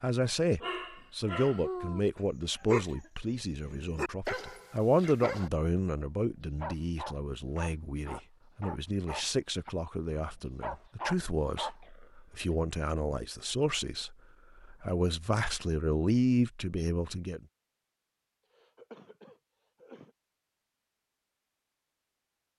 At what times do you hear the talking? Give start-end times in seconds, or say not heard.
0.0-17.4.